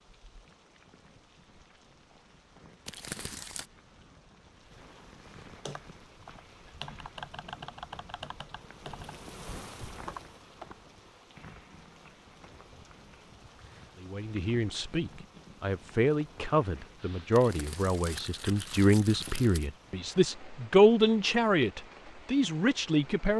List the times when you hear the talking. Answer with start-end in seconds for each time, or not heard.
14.0-23.3.